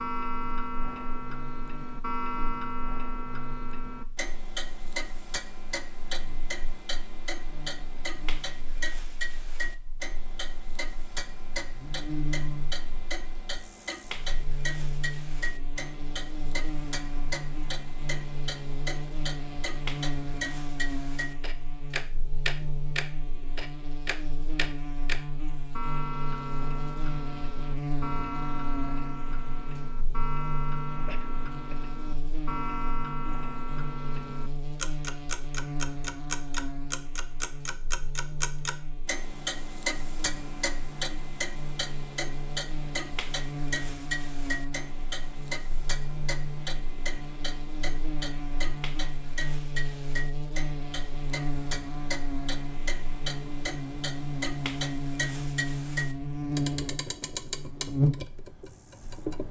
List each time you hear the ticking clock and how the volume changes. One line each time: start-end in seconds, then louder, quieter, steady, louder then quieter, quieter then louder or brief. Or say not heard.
0.0-59.4 steady.